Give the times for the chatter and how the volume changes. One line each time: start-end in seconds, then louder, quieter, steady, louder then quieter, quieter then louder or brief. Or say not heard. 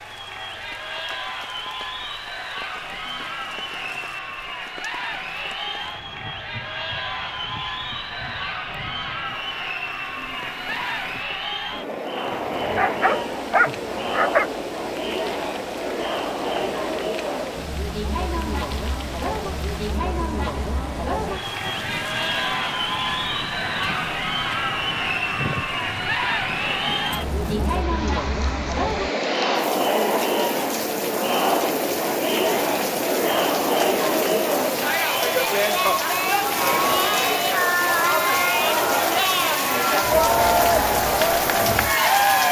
0.0-42.4 louder.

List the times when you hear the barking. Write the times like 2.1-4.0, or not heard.
12.3-14.5.